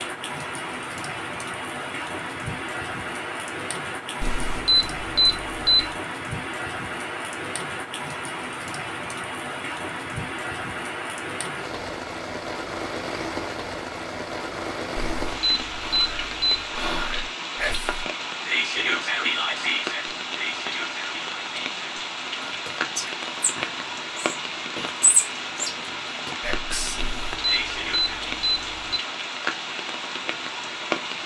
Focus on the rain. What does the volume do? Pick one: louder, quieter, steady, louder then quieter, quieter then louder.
steady.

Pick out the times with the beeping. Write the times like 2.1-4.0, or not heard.
4.2-6.0, 14.9-16.8, 26.9-29.0.